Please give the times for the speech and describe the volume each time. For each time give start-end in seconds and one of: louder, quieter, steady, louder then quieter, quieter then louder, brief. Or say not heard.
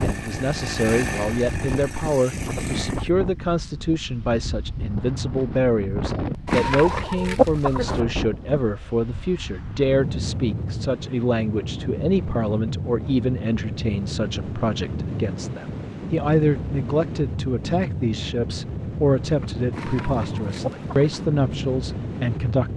0.0-22.7 steady.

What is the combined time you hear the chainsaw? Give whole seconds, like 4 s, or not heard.
3 s.